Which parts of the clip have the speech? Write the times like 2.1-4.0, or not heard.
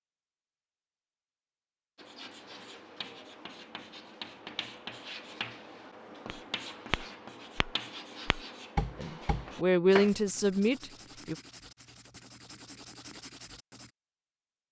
8.9-11.3.